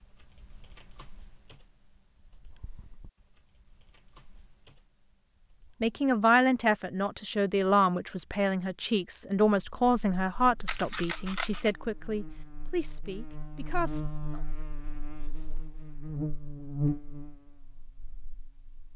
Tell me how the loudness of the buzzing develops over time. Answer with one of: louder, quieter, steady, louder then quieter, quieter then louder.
louder then quieter.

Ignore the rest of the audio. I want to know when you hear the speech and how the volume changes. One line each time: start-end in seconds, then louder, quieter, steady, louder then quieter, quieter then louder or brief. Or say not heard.
5.8-14.4 quieter.